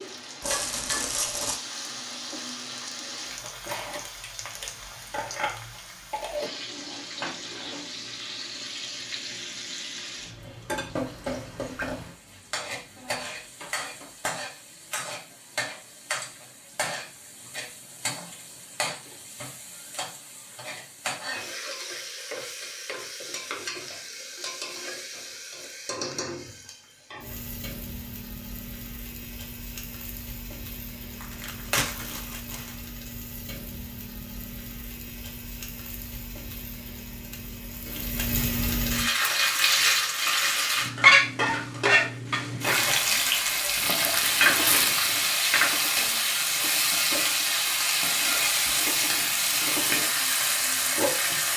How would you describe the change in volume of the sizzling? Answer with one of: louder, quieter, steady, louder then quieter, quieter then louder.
louder.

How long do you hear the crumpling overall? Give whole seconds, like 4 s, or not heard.
4 s.